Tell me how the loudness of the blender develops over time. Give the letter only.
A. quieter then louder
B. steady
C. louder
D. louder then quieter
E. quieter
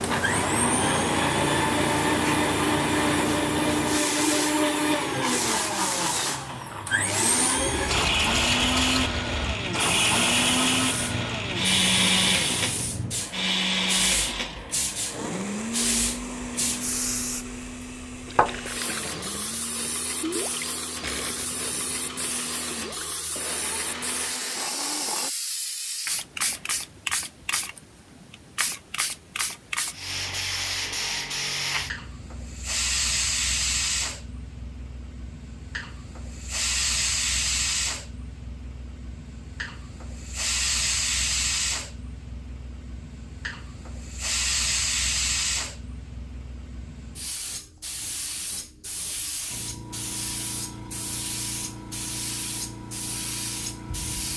E.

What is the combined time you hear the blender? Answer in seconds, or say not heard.
25 s.